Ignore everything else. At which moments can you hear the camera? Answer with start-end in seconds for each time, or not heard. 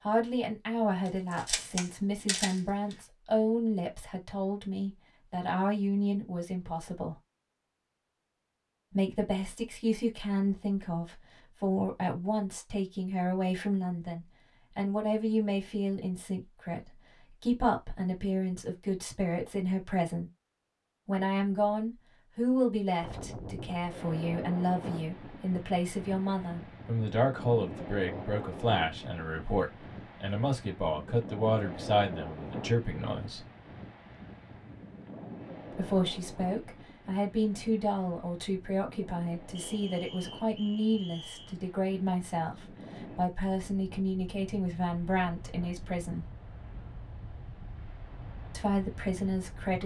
1.1-3.0.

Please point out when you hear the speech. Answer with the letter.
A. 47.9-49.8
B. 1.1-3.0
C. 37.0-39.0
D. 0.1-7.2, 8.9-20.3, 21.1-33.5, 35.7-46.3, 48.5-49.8
D.